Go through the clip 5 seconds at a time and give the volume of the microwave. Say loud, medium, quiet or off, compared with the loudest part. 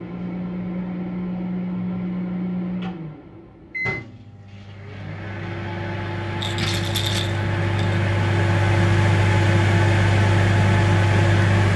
medium, loud, loud.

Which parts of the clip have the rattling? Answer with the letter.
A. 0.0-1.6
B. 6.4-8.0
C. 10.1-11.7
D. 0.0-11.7
B.